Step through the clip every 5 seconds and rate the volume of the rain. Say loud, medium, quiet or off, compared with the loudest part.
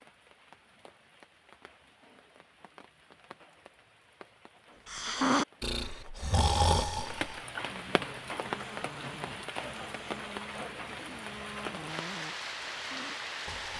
quiet, loud, loud.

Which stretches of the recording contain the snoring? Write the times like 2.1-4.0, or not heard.
4.8-13.7.